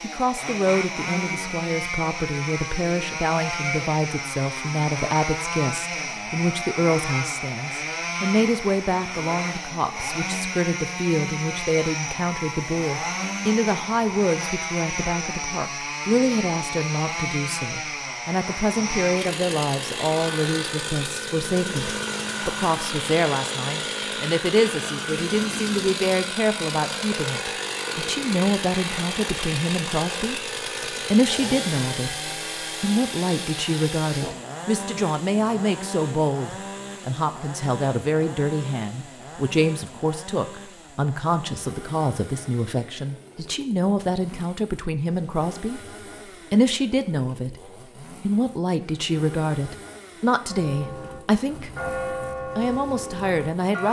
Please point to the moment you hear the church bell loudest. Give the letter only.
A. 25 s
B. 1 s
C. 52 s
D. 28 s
C.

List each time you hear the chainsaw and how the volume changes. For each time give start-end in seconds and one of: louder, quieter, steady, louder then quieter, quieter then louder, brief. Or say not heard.
0.0-53.8 quieter.